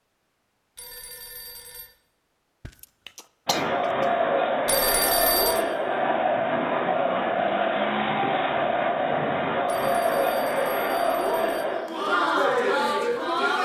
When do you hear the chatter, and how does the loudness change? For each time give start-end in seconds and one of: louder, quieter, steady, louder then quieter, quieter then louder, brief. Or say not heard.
3.5-13.6 steady.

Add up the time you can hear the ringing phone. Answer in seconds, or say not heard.
4 s.